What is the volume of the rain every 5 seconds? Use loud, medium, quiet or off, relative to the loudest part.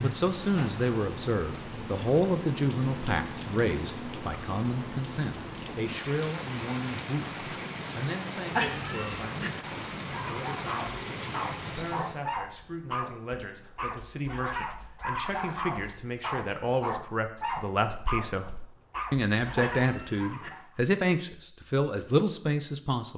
loud, loud, loud, off, off.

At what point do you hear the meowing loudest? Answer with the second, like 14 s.
9 s.